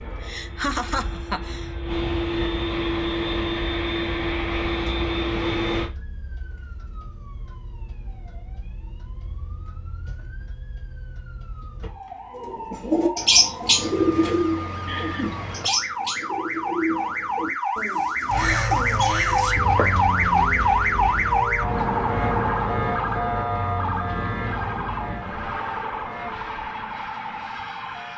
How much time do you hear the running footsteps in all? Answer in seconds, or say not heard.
not heard.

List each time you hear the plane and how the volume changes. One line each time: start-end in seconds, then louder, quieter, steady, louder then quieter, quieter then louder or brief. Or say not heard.
0.0-5.9 louder
18.2-28.1 quieter.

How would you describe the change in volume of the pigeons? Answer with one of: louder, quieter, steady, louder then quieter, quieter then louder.
quieter.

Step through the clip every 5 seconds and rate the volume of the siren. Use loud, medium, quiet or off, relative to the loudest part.
quiet, quiet, quiet, loud, loud, medium.